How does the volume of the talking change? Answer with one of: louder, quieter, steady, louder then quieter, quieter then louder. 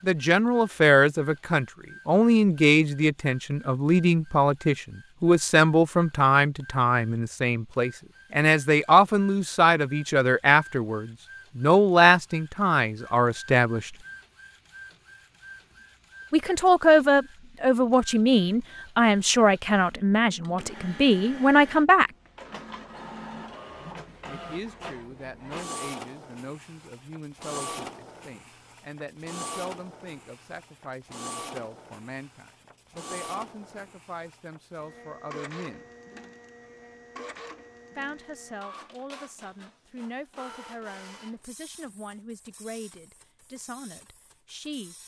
quieter.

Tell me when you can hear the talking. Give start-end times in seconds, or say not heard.
0.0-13.9, 16.3-22.1, 24.2-35.9, 38.0-45.0.